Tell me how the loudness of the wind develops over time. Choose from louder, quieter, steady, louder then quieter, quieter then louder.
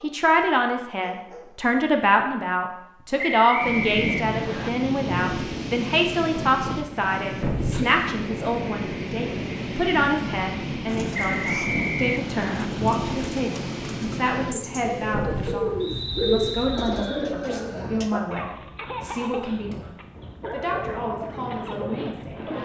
quieter.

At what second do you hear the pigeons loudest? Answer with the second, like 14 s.
16 s.